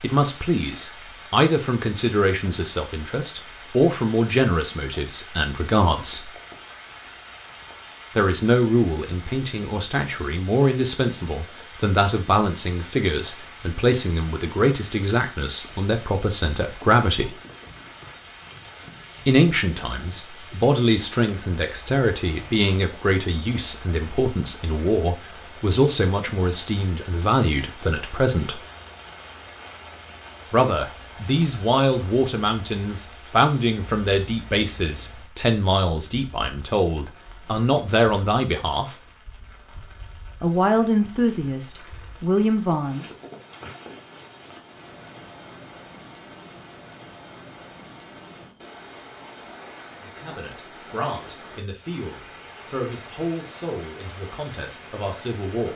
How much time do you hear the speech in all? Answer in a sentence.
You can hear the speech for 42 seconds altogether.